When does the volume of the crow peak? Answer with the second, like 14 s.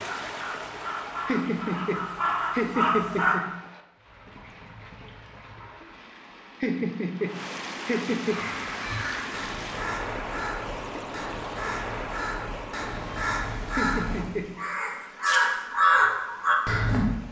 16 s.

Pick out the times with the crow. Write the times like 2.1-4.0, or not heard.
0.0-3.4, 8.2-17.1.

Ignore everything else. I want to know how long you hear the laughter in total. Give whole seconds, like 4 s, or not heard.
5 s.